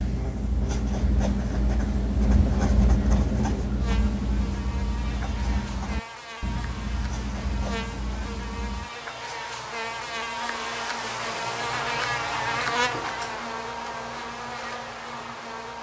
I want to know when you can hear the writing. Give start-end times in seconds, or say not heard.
0.0-8.9.